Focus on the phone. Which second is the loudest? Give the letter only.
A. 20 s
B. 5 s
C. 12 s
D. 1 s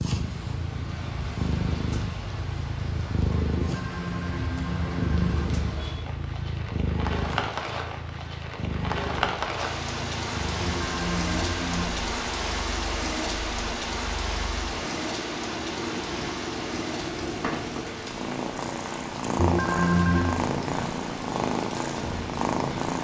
A.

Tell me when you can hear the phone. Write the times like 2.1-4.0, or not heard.
3.6-5.5, 10.6-11.9, 19.4-20.4.